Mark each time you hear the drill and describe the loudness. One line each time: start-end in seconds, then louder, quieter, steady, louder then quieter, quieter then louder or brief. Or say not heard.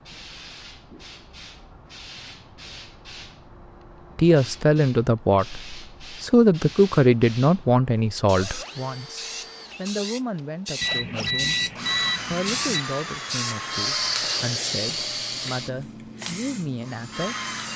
8.3-17.7 louder then quieter.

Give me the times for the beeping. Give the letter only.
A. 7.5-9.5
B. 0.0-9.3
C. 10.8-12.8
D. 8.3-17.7
C.